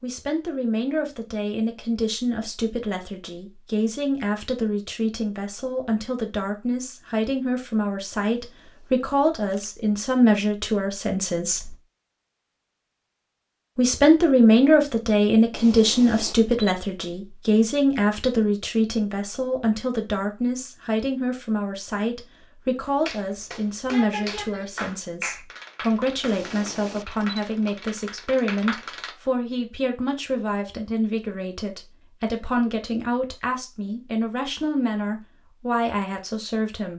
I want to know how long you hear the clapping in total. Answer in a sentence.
You can hear the clapping for 6 seconds altogether.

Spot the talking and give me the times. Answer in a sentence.
The talking can be heard from 0.0 to 11.8 s and from 13.8 to 36.9 s.